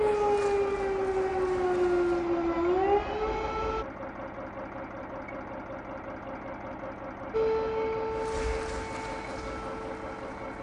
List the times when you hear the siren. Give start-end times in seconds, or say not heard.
0.0-3.9, 7.3-10.5.